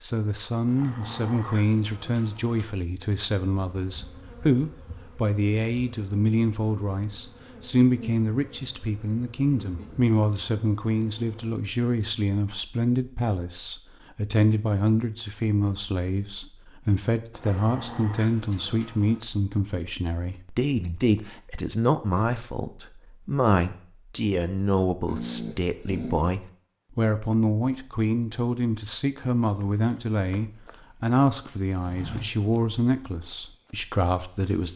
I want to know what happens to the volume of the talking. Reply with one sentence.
The loudness of the talking stays about the same.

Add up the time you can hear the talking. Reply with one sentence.
The talking can be heard for 35 seconds in total.